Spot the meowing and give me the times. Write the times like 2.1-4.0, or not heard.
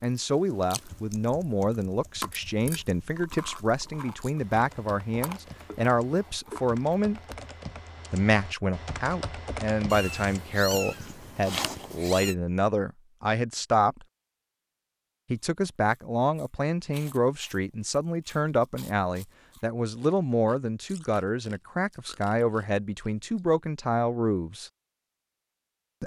9.9-12.3.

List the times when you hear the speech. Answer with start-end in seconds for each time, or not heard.
0.0-7.2, 8.1-14.1, 15.3-24.7.